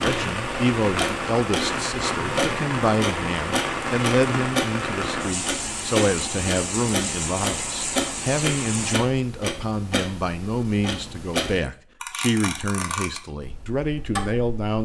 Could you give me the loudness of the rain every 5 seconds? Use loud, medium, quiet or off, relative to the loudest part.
loud, loud, off.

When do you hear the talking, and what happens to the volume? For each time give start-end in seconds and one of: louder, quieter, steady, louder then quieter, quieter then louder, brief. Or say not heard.
0.0-14.8 steady.